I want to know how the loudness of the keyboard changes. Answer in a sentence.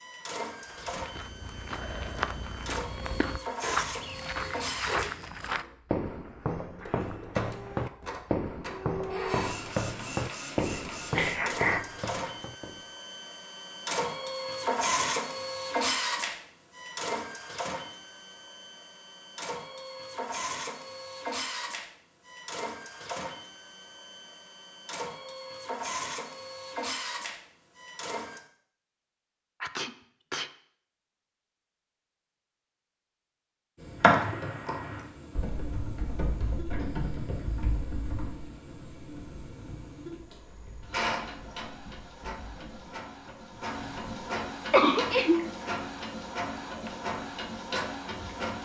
The loudness of the keyboard goes down.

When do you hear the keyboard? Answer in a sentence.
You can hear the keyboard from 34.0 to 44.2 s.